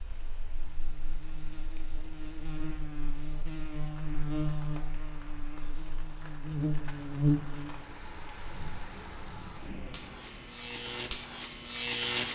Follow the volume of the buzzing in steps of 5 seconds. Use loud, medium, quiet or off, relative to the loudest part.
medium, loud, loud.